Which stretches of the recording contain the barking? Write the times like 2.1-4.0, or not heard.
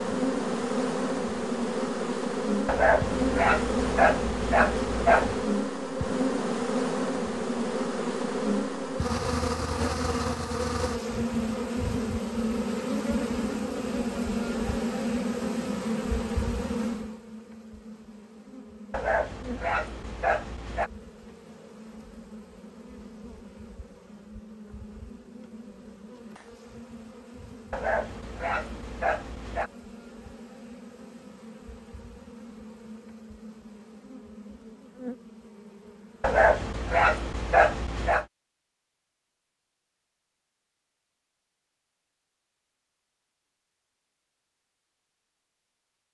2.6-5.5, 18.9-20.9, 27.7-29.7, 36.2-38.2.